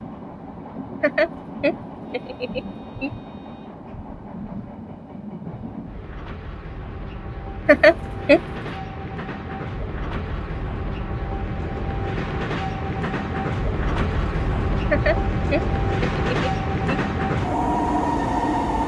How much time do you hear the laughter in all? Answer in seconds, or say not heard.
5 s.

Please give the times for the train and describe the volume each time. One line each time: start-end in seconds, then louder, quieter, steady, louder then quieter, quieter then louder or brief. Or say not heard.
0.0-18.8 louder.